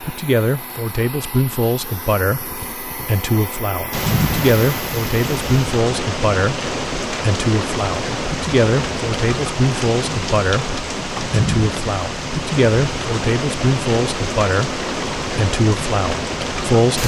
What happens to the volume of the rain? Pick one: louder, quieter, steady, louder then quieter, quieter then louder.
steady.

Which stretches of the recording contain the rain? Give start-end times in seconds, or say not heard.
3.9-17.0.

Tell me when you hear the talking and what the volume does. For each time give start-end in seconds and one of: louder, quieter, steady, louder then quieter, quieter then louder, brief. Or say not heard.
0.0-17.0 steady.